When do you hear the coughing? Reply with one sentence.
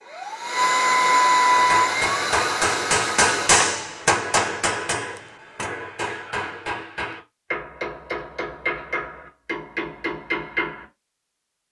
You can't hear the coughing here.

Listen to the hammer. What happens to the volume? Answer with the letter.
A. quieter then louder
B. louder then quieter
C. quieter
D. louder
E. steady
C.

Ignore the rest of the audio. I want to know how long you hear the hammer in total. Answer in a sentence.
The hammer can be heard for 9 seconds in total.